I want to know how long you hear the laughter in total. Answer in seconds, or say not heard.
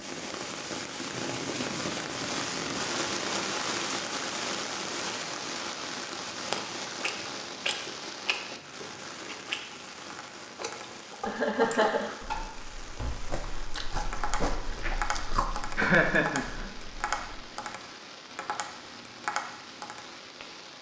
4 s.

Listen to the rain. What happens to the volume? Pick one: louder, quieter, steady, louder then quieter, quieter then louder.
quieter.